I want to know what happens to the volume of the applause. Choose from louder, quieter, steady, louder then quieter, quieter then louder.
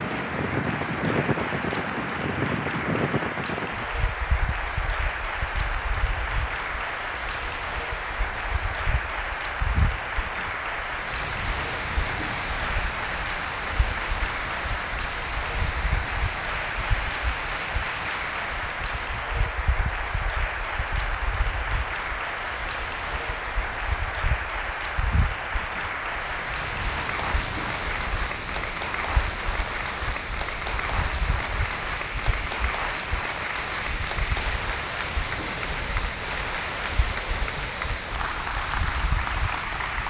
steady.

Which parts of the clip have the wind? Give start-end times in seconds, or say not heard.
0.0-40.0.